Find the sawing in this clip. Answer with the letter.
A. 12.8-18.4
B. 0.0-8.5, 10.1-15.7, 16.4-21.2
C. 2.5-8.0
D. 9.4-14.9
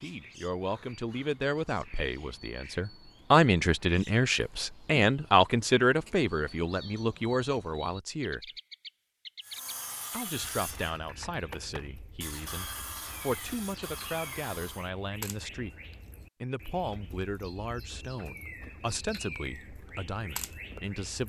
D.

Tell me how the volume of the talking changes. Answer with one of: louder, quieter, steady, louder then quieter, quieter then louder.
quieter.